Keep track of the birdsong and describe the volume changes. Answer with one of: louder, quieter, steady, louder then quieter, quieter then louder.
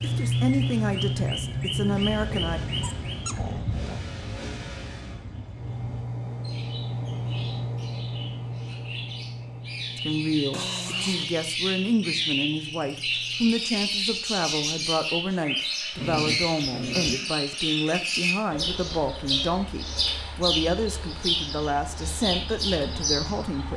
quieter then louder.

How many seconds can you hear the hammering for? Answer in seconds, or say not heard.
not heard.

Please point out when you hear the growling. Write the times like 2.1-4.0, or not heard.
2.2-4.0, 10.5-11.3, 15.9-17.2.